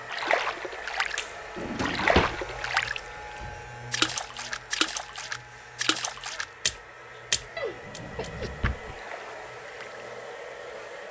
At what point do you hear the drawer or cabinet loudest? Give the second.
2 s.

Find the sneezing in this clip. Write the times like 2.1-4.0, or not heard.
7.5-8.5.